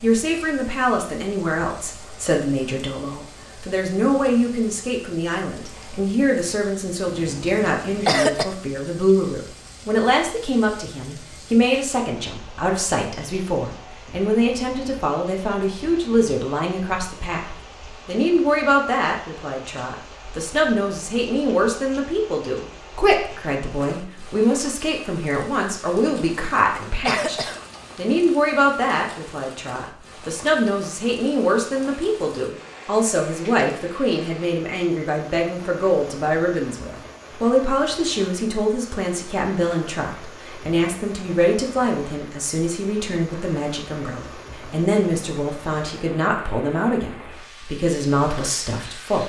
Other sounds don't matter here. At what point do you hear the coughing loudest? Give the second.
8 s.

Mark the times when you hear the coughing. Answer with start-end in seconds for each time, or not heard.
7.0-8.4, 26.1-28.2.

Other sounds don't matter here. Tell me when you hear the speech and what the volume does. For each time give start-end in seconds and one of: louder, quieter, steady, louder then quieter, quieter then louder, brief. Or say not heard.
0.0-49.2 steady.